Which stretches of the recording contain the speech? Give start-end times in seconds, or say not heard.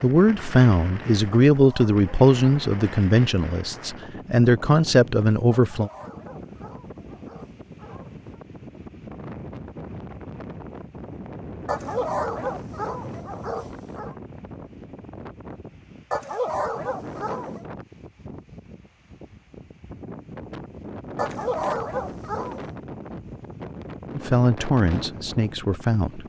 0.0-5.9, 24.1-26.2.